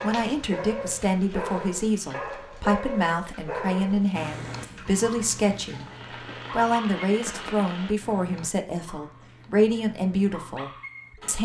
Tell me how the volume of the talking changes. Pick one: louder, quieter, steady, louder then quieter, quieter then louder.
steady.